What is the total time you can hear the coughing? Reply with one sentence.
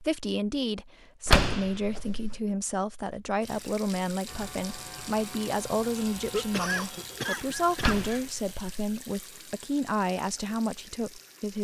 The coughing can be heard for 2 seconds in total.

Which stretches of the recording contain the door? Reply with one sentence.
You can hear the door from 1.2 to 2.4 s and from 7.8 to 8.8 s.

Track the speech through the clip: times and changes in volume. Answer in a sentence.
You can hear the speech from 0.0 to 11.5 s, at a steady volume.